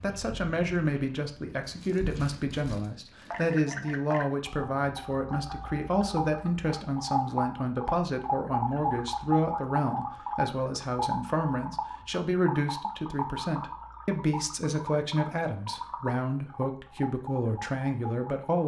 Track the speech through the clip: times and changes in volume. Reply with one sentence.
The speech can be heard from 0.0 to 18.6 s, at a steady volume.